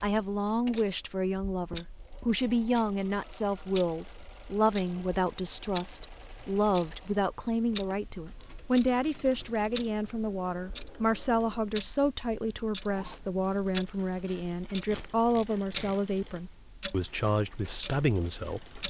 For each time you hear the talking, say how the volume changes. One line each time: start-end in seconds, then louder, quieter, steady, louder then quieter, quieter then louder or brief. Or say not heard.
0.0-18.8 steady.